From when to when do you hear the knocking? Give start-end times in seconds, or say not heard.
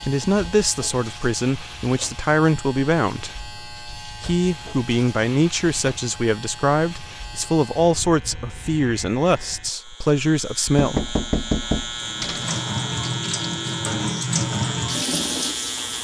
10.8-12.7.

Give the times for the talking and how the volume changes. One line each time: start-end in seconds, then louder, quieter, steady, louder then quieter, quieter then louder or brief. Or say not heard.
0.1-11.2 steady.